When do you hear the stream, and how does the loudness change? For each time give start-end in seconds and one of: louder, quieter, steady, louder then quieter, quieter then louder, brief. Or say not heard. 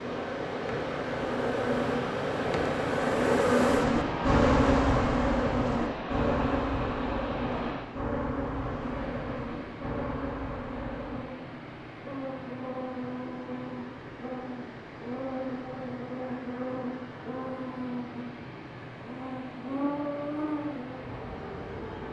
0.0-22.0 quieter.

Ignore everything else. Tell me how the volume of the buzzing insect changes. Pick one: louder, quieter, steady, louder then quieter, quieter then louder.
quieter.